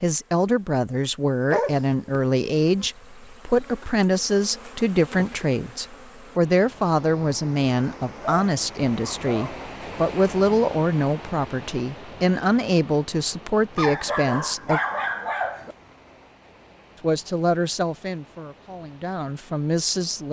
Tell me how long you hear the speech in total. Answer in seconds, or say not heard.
18 s.